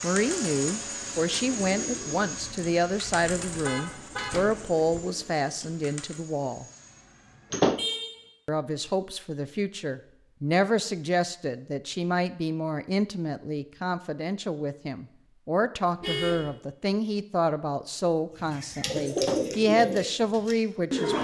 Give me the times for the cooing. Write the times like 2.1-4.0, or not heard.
0.0-6.2, 18.4-21.2.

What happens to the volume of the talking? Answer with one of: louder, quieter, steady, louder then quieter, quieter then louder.
steady.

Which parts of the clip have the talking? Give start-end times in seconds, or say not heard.
0.0-6.7, 8.4-21.2.